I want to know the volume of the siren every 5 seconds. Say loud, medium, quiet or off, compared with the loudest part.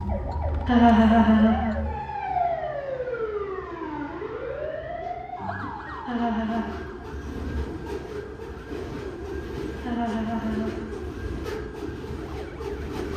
loud, medium, quiet.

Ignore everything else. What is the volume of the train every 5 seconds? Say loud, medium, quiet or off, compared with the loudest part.
quiet, loud, loud.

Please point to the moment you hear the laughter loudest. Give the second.
1 s.